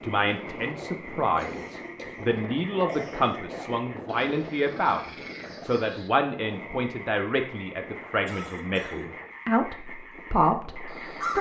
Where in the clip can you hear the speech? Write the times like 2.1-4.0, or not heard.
0.0-11.3.